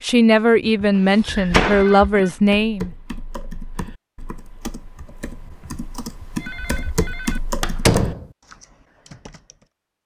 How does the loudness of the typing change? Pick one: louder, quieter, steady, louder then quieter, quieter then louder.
louder.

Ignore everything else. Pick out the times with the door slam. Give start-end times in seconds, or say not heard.
1.2-2.0, 7.6-8.2.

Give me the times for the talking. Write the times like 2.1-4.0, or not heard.
0.0-2.9.